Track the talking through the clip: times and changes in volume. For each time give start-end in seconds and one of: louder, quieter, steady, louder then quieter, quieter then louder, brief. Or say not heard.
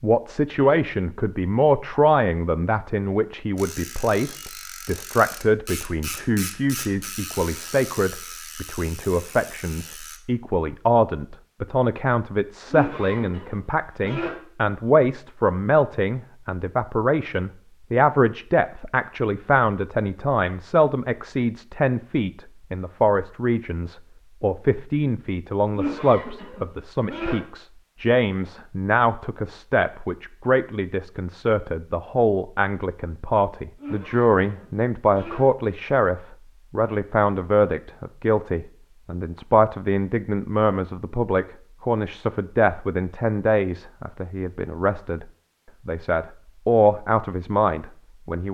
0.0-45.2 steady
45.9-48.4 brief.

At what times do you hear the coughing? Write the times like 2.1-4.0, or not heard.
12.7-14.3, 25.7-27.4, 33.8-35.4.